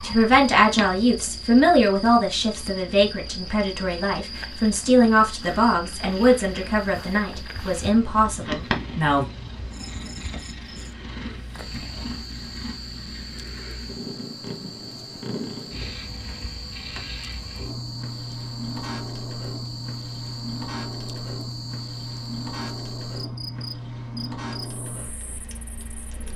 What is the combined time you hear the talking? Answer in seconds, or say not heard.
9 s.